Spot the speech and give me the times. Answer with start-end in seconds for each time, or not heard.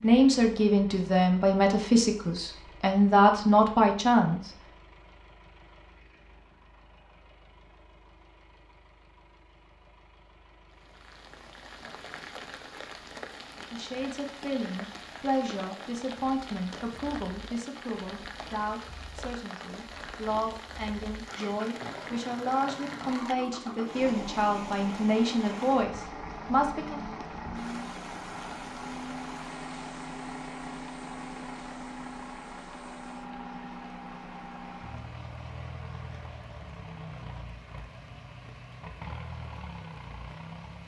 0.0-4.5, 13.6-27.0.